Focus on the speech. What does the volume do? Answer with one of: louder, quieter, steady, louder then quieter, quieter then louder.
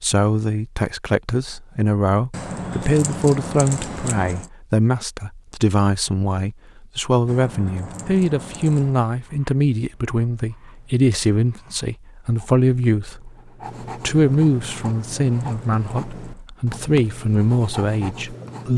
steady.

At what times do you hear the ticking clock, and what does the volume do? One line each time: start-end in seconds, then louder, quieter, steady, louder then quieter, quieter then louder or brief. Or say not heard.
not heard.